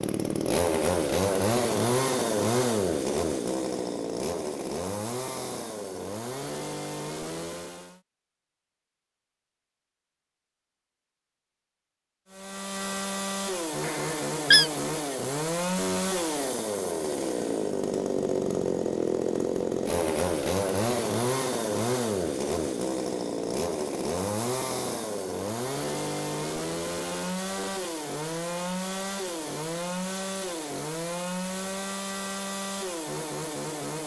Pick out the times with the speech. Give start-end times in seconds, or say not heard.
not heard.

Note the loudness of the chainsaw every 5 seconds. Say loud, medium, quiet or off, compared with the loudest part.
loud, medium, medium, loud, loud, medium, medium.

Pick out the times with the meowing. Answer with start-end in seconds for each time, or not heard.
13.8-14.7.